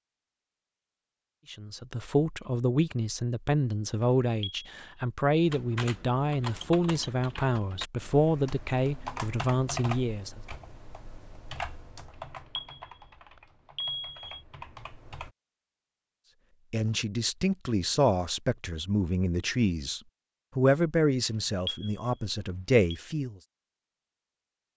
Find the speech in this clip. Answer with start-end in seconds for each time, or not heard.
1.5-10.4, 16.7-23.4.